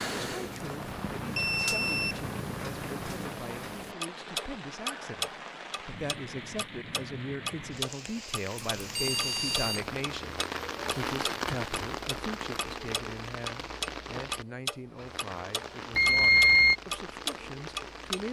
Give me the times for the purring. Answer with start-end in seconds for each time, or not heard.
0.0-3.3.